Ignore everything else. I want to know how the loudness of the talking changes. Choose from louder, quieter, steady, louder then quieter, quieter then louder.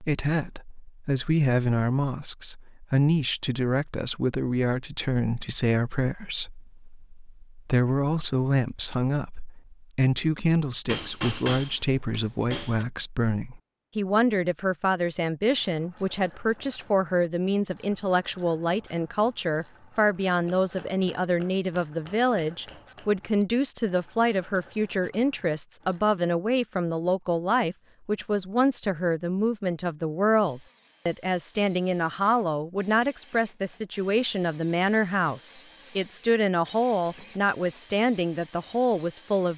steady.